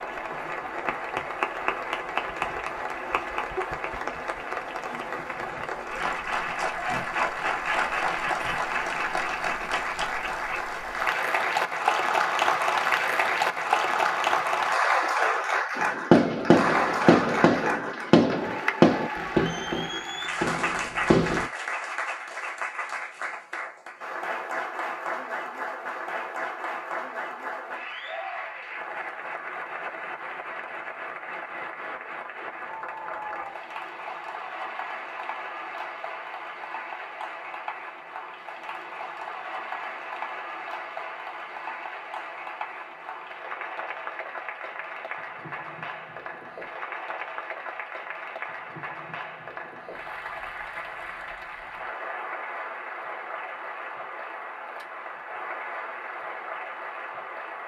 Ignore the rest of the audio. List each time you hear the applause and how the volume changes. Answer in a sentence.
You can hear the applause from 0.0 to 57.6 s, getting quieter.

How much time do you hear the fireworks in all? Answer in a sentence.
The fireworks can be heard for 6 seconds in total.